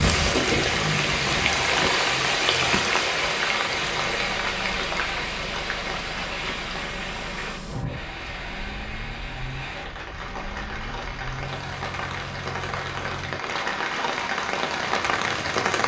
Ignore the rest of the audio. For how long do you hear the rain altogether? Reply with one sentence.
The rain can be heard for 16 seconds in total.